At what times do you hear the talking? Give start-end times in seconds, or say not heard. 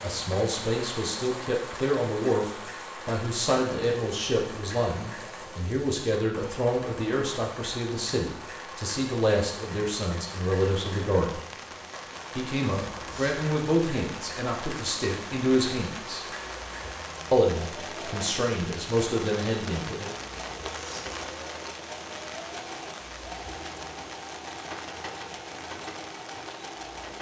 0.0-11.4, 12.3-16.2, 17.3-20.1.